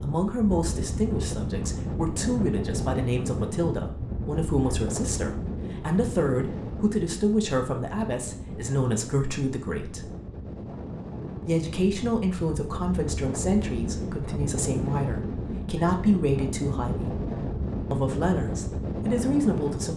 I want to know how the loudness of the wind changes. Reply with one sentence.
The volume of the wind goes down, then up.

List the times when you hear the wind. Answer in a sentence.
You can hear the wind from 0.0 to 19.9 s.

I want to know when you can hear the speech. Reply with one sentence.
You can hear the speech from 0.0 to 10.1 s, from 11.4 to 17.2 s and from 17.9 to 19.9 s.